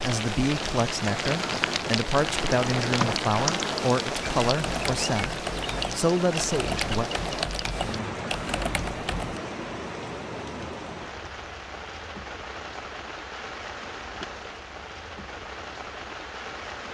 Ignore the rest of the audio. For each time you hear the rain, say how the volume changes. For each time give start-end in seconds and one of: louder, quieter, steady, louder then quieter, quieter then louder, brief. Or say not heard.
0.0-16.8 quieter.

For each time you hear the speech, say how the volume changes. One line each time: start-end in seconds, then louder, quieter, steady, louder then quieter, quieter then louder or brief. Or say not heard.
0.0-7.1 steady.